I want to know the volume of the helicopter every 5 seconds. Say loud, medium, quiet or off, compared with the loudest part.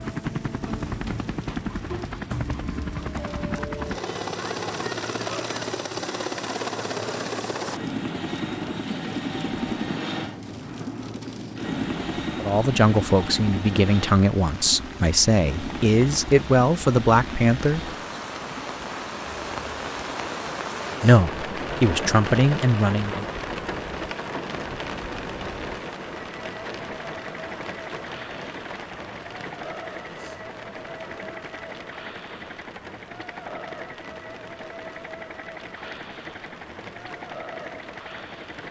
loud, loud, loud, medium, medium, medium, medium, medium.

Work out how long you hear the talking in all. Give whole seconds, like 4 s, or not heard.
8 s.